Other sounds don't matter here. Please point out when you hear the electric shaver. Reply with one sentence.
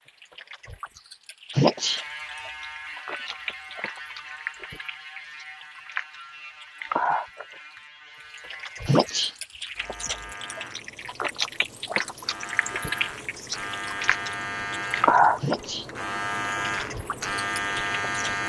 The electric shaver can be heard from 1.7 to 18.4 s.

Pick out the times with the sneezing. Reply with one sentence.
The sneezing can be heard from 1.6 to 2.0 s, from 8.8 to 9.3 s and from 15.4 to 15.8 s.